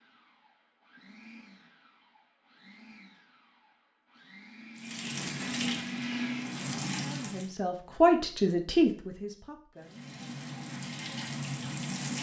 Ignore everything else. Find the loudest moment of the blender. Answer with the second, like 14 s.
6 s.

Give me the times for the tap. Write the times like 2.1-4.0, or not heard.
4.8-7.5, 9.8-12.1.